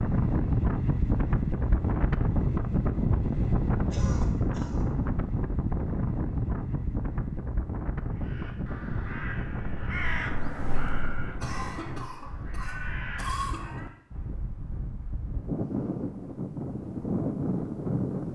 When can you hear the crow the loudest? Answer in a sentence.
The loudest moment of the crow is at 10 seconds.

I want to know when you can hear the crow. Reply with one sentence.
The crow can be heard from 8.2 to 13.9 s.